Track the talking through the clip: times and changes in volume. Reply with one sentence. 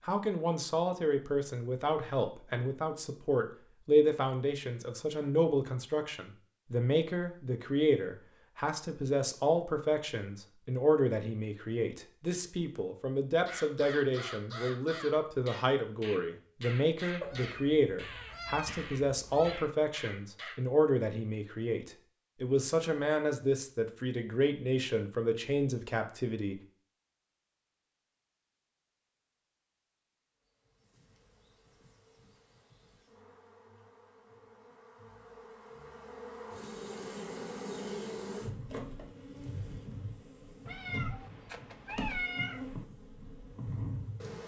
The talking can be heard from 0.0 to 26.6 s, at a steady volume.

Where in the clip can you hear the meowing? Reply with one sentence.
You can hear the meowing from 17.2 to 19.7 s and from 40.6 to 42.8 s.